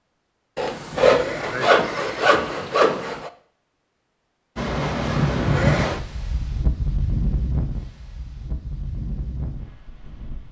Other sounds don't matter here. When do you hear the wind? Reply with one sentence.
You can hear the wind from 4.5 to 10.4 s.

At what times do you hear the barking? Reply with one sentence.
The barking can't be heard in this clip.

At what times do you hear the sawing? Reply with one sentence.
The sawing can be heard from 0.6 to 3.3 s.